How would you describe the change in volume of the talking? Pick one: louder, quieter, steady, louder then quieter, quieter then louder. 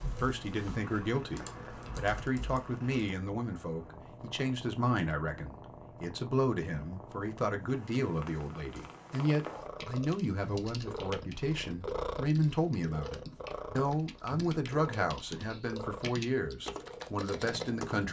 steady.